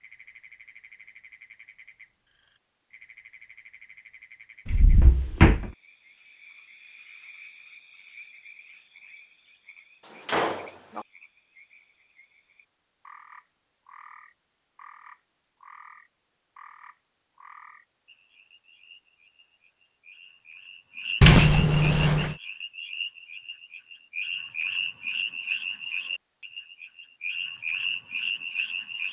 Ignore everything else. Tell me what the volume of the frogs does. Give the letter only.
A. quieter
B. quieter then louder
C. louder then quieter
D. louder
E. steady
D.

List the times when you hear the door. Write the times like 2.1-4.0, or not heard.
4.7-5.7, 10.0-11.1, 21.2-22.4.